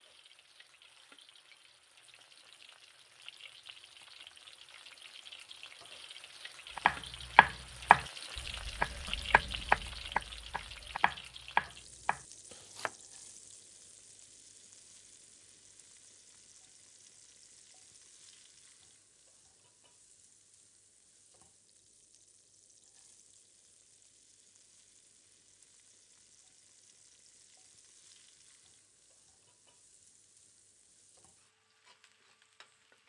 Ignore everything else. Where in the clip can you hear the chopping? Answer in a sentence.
The chopping can be heard from 6.8 to 12.9 s.